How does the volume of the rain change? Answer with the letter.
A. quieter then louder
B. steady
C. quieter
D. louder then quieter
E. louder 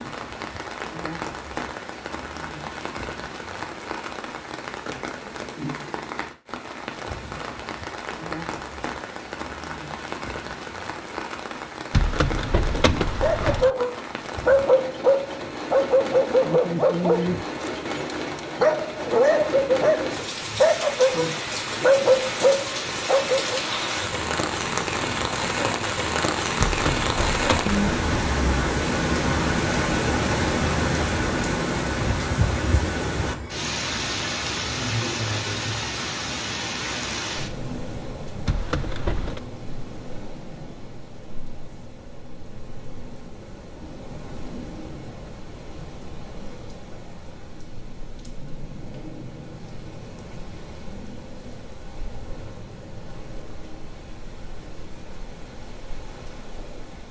D.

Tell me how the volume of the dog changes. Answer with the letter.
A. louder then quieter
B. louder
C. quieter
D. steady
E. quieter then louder
D.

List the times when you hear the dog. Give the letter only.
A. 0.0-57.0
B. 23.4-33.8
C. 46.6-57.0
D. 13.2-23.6
D.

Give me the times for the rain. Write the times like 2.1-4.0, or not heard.
0.0-57.0.